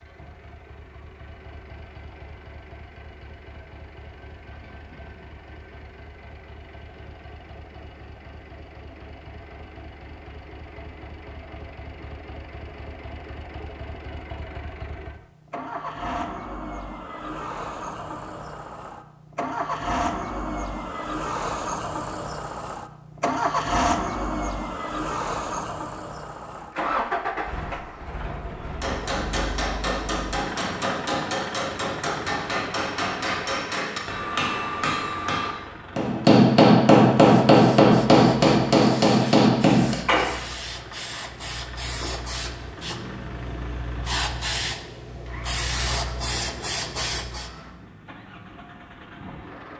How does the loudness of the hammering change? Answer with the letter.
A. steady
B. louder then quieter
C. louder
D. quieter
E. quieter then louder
C.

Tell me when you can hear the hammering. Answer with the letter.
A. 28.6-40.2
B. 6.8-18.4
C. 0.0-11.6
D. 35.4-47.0
A.